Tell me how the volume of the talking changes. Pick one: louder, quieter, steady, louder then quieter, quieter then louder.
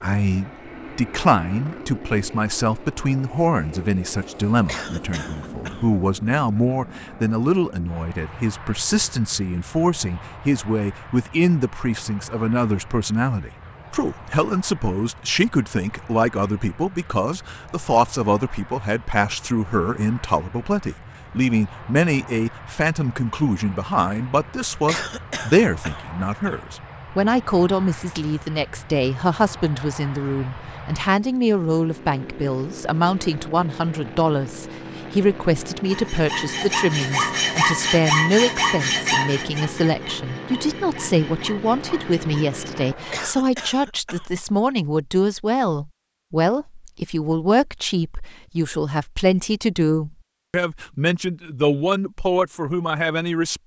steady.